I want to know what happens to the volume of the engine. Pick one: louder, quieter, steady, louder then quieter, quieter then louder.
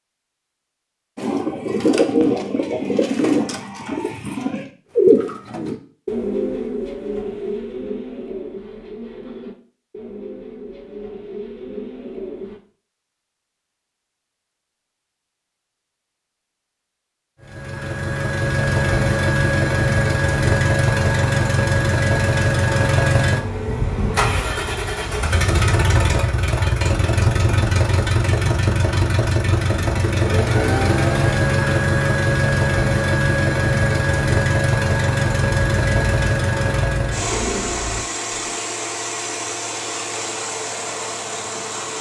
quieter.